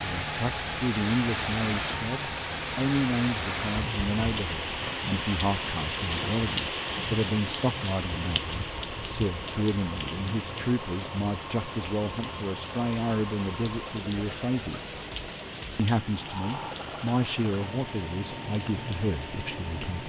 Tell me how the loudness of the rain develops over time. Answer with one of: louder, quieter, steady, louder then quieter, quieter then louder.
quieter.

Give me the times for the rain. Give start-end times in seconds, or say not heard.
0.0-20.0.